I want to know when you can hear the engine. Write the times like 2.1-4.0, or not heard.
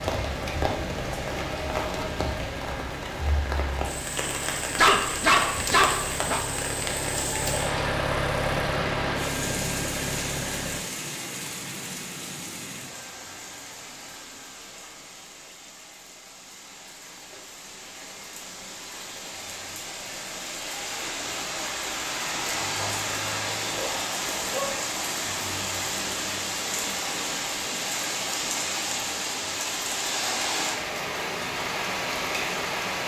0.0-10.8.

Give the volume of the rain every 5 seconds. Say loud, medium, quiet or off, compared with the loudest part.
loud, loud, medium, quiet, loud, loud, loud.